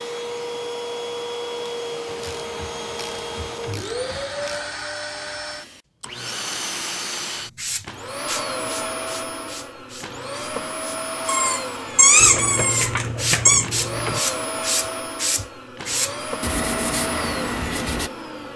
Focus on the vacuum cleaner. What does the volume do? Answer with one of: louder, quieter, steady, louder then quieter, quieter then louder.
steady.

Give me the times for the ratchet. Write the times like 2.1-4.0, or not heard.
2.0-4.6, 12.2-14.2.